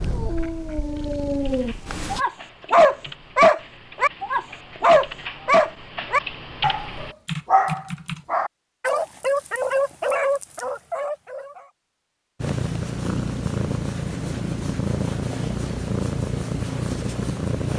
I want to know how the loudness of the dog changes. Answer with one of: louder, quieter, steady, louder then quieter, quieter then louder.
louder then quieter.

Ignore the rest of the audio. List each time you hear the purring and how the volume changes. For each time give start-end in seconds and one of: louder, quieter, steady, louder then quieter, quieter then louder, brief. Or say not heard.
0.0-2.2 brief
12.4-17.7 steady.